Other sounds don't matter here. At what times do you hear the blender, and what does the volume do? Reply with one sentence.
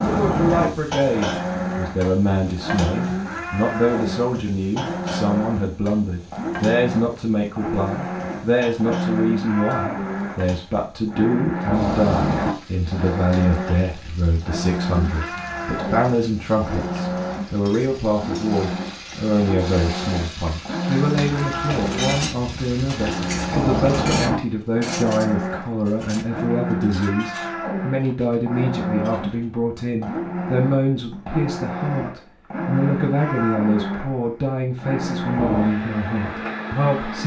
The blender can be heard from 0.0 to 37.2 s, at a steady volume.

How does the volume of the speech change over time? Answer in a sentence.
The volume of the speech stays about the same.